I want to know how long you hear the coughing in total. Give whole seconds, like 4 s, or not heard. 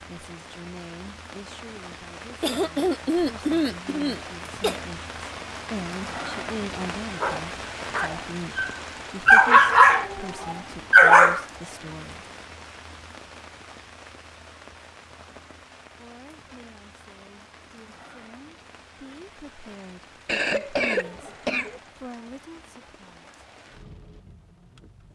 4 s.